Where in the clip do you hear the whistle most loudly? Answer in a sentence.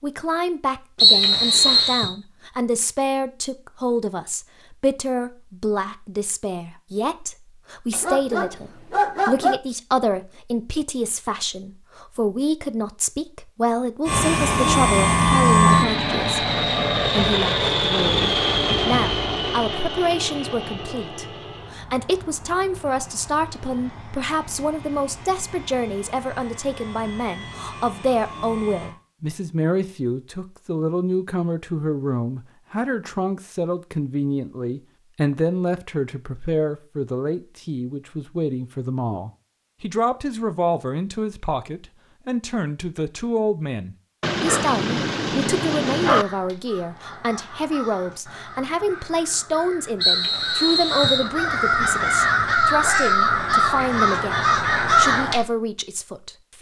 The loudest moment of the whistle is at 1 second.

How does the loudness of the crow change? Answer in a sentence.
The loudness of the crow goes up.